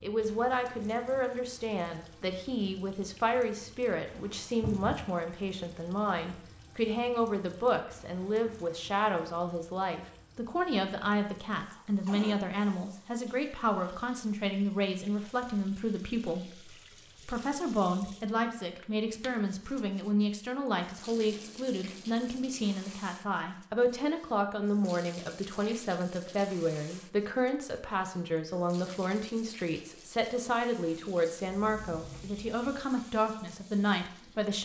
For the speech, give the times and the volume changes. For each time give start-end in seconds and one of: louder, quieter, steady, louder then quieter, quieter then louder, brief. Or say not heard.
0.0-34.6 steady.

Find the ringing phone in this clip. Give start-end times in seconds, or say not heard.
not heard.